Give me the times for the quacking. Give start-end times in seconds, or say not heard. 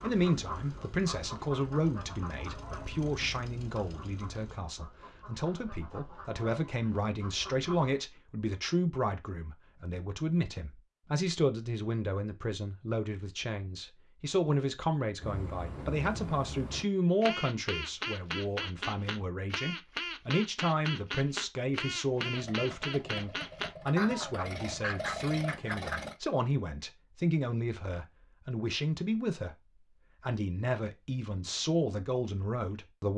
0.0-8.0, 15.2-26.0.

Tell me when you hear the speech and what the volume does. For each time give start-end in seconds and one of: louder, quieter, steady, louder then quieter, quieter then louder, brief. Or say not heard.
0.0-33.1 steady.